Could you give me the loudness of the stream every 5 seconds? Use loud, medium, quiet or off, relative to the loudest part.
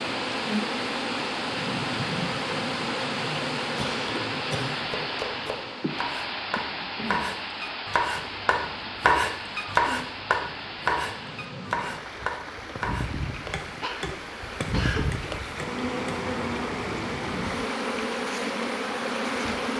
loud, loud, medium, loud.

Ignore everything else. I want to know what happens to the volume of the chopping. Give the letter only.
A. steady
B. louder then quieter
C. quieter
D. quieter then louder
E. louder
B.